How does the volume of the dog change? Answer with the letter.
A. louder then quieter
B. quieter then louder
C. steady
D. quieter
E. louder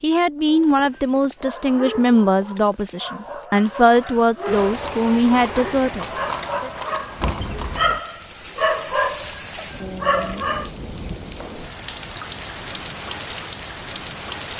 E.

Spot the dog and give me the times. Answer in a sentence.
You can hear the dog from 0.5 to 10.7 s.